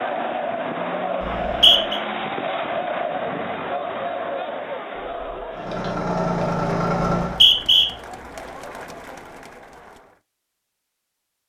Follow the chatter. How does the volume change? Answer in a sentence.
The loudness of the chatter goes down.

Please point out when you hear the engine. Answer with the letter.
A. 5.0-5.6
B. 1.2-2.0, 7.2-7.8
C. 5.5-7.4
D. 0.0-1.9
C.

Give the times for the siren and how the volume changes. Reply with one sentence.
You can't hear the siren here.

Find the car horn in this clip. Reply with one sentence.
You can hear the car horn from 5.0 to 5.6 s.